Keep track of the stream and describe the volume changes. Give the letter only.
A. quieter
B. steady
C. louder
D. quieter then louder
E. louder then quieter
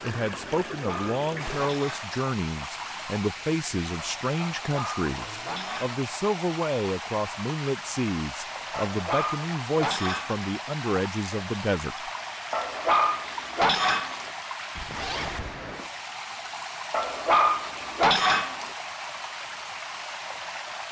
B.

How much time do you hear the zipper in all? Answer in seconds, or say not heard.
2 s.